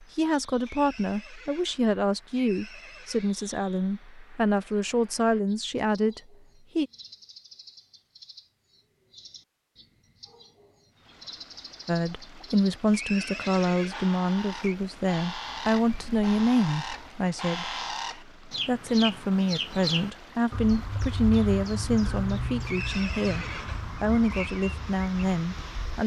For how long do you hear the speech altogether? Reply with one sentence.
The speech can be heard for 20 seconds in total.